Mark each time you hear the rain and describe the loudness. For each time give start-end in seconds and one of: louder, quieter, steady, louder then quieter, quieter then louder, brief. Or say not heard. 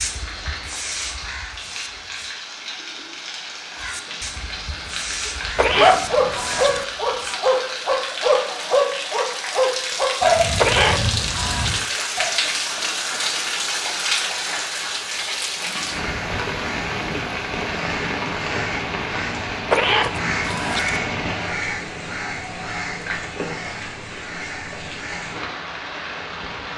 0.0-26.7 louder then quieter.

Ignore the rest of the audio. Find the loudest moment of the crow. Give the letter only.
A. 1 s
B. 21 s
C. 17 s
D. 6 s
B.